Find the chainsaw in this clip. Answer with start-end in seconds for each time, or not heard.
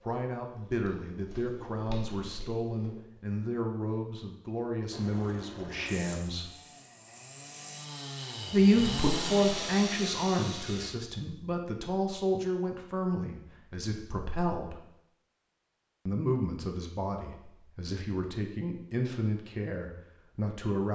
4.9-10.9.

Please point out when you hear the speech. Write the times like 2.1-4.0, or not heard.
0.0-6.5, 8.5-14.8, 16.1-20.9.